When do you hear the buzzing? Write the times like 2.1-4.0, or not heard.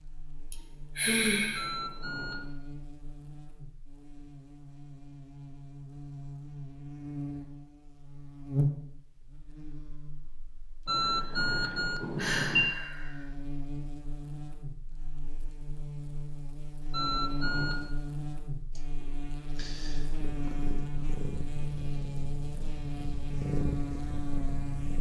0.0-24.9.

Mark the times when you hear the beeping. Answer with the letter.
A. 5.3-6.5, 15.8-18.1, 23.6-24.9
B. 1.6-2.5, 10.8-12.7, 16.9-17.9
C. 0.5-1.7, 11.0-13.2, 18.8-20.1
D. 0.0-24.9
B.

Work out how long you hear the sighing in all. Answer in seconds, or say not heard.
5 s.